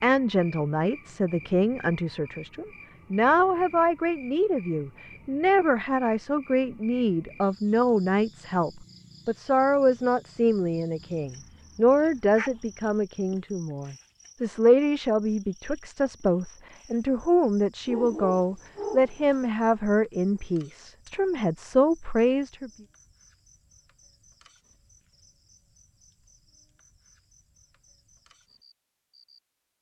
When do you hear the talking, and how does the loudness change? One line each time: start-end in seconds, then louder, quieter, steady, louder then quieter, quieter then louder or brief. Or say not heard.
0.0-22.7 steady.